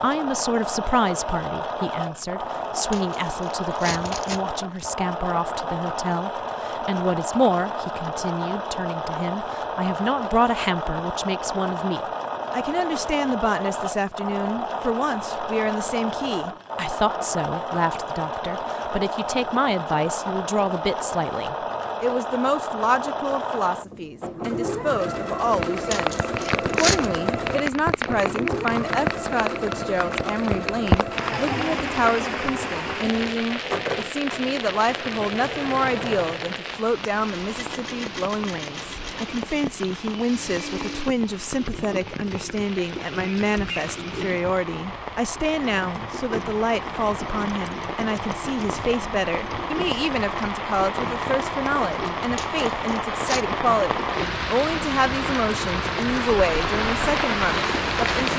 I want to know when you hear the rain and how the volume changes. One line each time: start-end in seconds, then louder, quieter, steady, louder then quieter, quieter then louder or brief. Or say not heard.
25.5-58.3 quieter then louder.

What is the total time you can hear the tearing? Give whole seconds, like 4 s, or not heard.
4 s.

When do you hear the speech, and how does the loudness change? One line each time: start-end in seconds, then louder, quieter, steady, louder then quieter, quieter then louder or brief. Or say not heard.
0.0-58.3 steady.